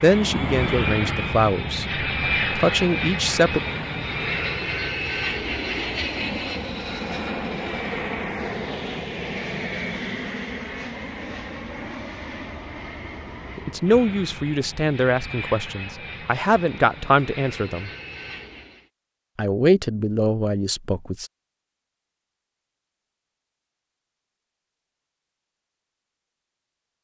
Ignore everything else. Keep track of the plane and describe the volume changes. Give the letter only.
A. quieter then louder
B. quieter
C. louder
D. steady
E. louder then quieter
B.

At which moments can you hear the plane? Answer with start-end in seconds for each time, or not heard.
0.0-18.9.